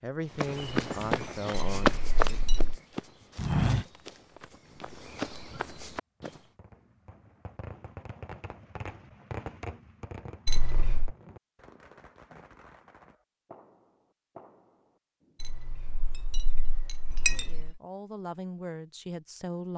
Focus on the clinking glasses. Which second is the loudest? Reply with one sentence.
The loudest moment of the clinking glasses is at 17 seconds.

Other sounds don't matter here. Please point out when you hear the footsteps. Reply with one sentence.
You can hear the footsteps from 0.3 to 6.4 s.